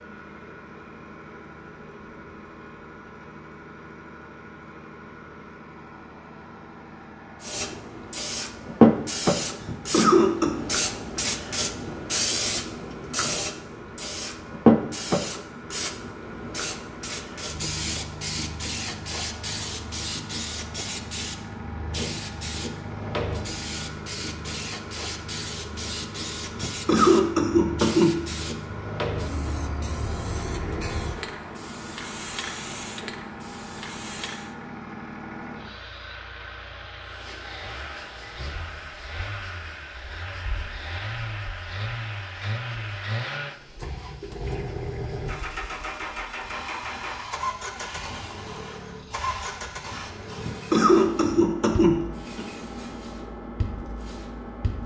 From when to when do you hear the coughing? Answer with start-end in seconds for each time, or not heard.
9.6-10.6, 26.6-28.1, 50.4-52.5.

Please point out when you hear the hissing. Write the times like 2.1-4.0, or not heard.
7.4-34.5, 37.0-54.8.